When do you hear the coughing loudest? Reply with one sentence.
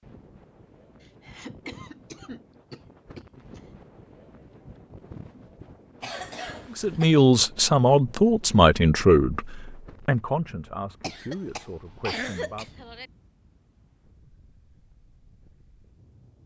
The volume of the coughing peaks at 12 seconds.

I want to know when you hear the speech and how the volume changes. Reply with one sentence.
The speech can be heard from 6.8 to 12.7 s, getting quieter.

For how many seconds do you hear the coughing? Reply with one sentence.
You can hear the coughing for 6 seconds altogether.